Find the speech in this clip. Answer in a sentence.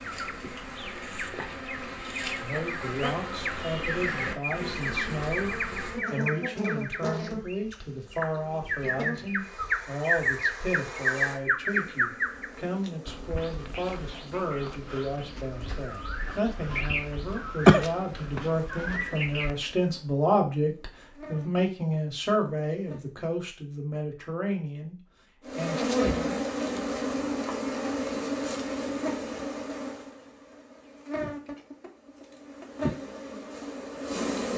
You can hear the speech from 2.4 to 26.4 s.